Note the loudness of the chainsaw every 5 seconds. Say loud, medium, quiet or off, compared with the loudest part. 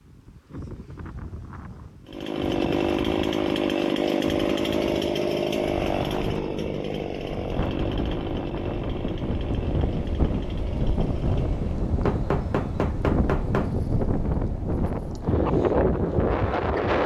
loud, medium, quiet, off.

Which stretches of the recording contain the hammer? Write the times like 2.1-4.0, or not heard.
12.1-13.8.